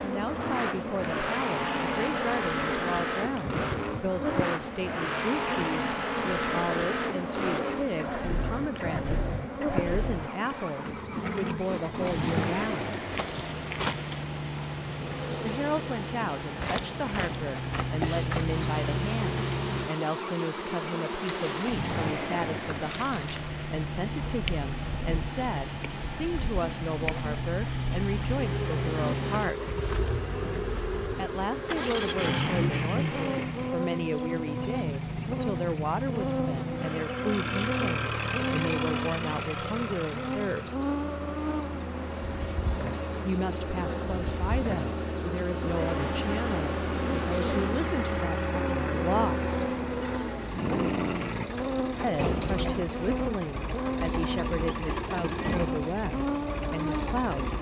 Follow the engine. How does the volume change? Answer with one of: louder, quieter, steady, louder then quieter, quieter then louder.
steady.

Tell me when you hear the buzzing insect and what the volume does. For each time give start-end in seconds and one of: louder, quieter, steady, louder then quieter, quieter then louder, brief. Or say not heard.
0.0-57.5 steady.